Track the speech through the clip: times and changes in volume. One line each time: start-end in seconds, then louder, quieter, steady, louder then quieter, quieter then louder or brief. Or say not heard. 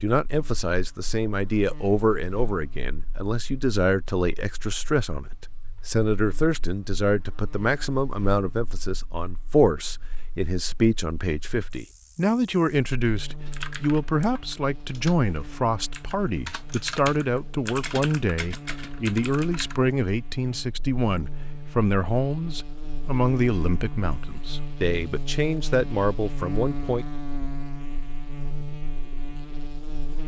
0.0-27.1 steady.